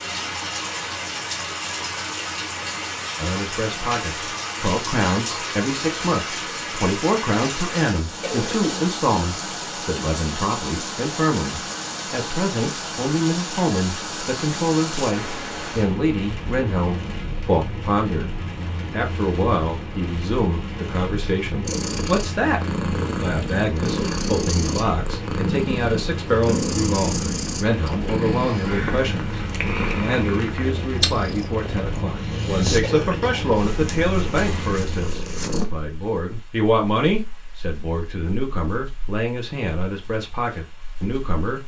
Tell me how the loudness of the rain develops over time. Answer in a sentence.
The loudness of the rain goes down.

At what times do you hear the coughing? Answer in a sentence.
The coughing can be heard from 8.2 to 8.9 s and from 32.8 to 33.5 s.